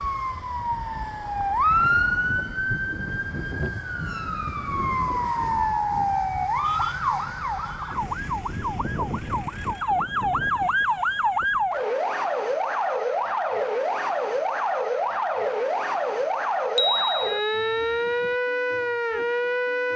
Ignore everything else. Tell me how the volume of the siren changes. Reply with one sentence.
The loudness of the siren stays about the same.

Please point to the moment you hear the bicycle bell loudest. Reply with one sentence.
The volume of the bicycle bell peaks at 17 seconds.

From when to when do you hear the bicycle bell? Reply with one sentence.
You can hear the bicycle bell from 16.8 to 18.4 s.